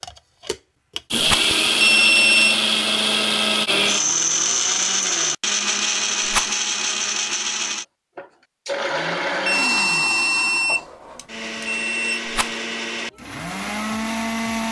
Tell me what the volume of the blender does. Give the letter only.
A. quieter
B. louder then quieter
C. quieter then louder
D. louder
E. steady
A.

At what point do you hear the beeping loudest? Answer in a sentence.
The loudest moment of the beeping is at 2 seconds.